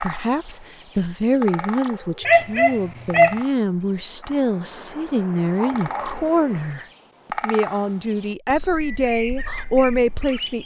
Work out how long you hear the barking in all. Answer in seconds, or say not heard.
2 s.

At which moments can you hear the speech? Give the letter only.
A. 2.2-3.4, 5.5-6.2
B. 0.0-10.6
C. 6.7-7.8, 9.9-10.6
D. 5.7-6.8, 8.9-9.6
B.